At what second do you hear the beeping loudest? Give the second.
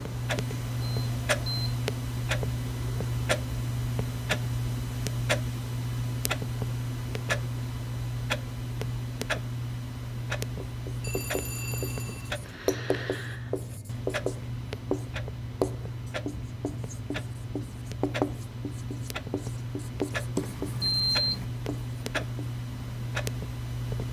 21 s.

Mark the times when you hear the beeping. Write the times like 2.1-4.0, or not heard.
0.8-1.8, 11.0-12.3, 20.4-21.4.